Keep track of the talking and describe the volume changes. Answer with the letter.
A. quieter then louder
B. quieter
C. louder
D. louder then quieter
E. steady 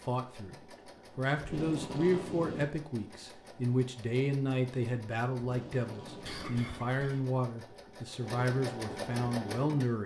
E.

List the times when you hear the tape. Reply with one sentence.
The tape can be heard from 1.4 to 2.7 s and from 5.4 to 7.0 s.